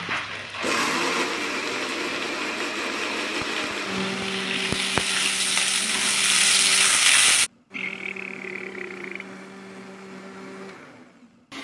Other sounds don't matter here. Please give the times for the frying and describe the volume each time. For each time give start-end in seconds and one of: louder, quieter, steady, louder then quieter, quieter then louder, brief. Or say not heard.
0.0-7.5 louder.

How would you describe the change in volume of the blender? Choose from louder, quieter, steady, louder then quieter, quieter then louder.
quieter.